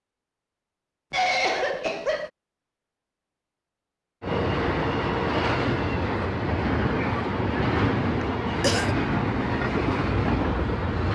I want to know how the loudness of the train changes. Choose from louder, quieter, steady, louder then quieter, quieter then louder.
steady.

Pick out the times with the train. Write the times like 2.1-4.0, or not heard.
4.2-11.0.